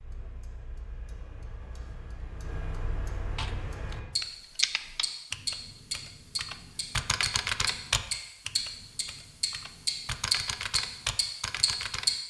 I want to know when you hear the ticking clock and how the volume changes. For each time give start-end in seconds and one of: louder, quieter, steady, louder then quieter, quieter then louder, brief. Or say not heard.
0.0-12.1 louder.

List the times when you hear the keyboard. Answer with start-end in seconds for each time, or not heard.
3.4-12.2.